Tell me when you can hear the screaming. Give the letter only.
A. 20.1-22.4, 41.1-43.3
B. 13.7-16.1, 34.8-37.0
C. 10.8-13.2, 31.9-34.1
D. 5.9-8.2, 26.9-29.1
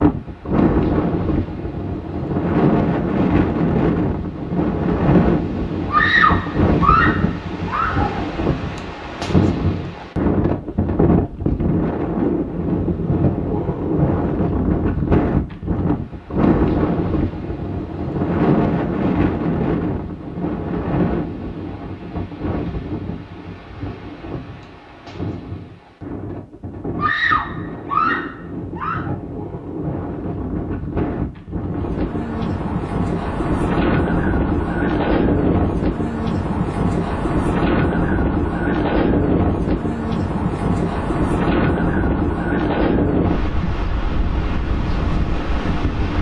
D.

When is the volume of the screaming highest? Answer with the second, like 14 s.
6 s.